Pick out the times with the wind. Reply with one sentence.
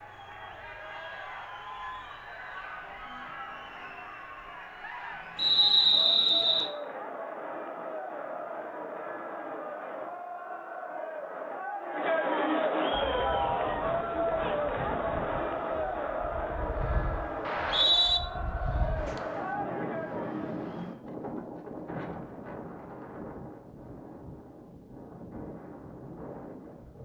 The wind can be heard from 12.9 to 26.9 s.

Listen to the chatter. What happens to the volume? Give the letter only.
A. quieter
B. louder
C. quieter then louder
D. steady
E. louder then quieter
E.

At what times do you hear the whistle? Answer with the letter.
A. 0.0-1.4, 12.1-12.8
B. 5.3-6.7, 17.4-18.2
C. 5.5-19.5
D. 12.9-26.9
B.